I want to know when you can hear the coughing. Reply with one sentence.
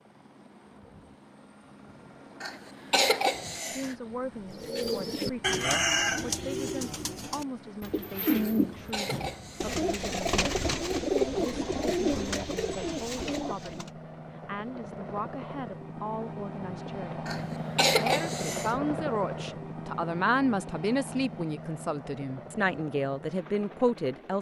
You can hear the coughing from 2.4 to 4.0 s, from 8.4 to 9.8 s and from 17.2 to 18.8 s.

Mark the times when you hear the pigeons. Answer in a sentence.
You can hear the pigeons from 4.5 to 13.9 s.